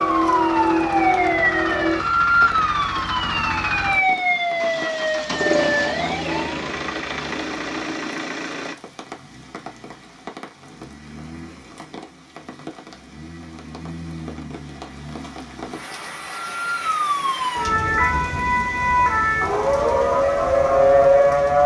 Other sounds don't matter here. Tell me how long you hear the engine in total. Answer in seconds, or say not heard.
9 s.